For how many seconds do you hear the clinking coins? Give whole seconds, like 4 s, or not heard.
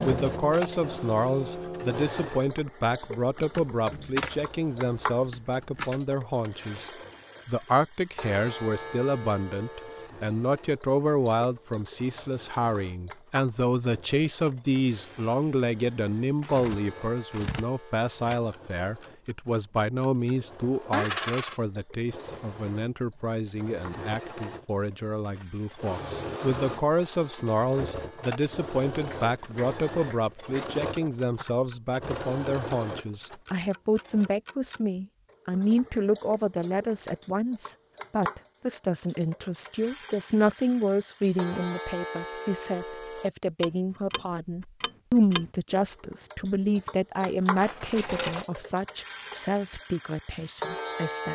4 s.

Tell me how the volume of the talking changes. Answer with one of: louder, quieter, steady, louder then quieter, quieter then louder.
steady.